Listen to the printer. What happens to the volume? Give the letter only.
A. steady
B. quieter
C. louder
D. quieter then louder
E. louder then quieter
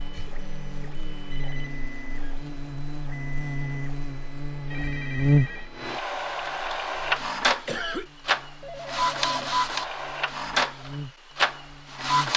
C.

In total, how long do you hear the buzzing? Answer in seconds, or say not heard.
12 s.